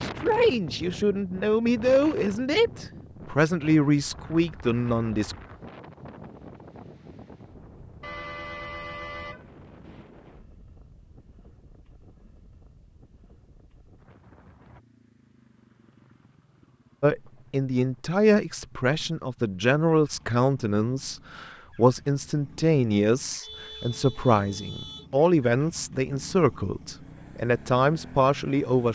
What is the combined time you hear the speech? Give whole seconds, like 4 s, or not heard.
17 s.